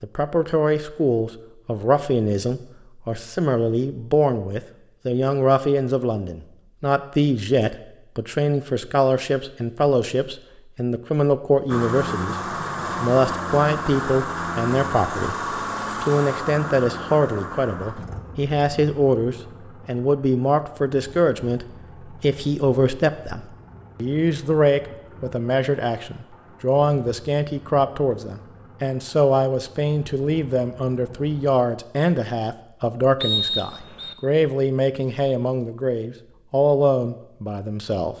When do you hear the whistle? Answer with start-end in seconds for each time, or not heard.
33.2-34.1.